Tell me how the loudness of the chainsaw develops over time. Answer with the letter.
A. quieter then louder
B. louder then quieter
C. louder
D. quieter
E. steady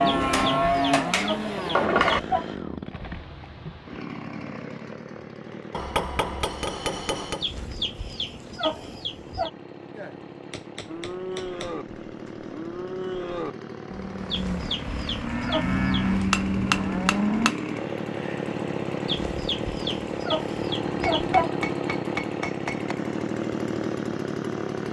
A.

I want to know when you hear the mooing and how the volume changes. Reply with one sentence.
The mooing can be heard briefly from 0.0 to 1.8 s; and from 10.8 to 17.6 s, getting louder.